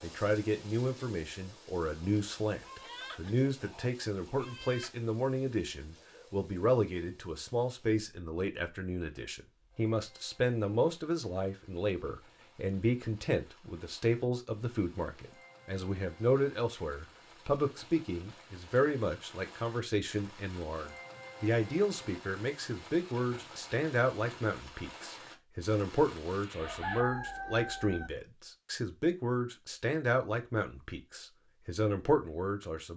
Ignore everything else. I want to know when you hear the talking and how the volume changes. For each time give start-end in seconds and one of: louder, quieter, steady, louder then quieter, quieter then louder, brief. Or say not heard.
0.0-32.9 steady.